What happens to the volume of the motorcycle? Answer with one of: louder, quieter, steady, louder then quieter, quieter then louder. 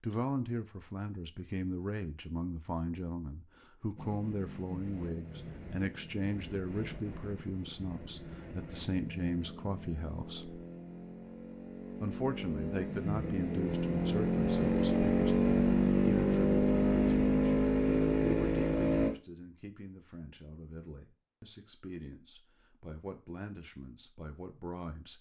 louder.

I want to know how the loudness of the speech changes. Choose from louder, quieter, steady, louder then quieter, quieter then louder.
quieter.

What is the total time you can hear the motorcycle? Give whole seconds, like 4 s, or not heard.
15 s.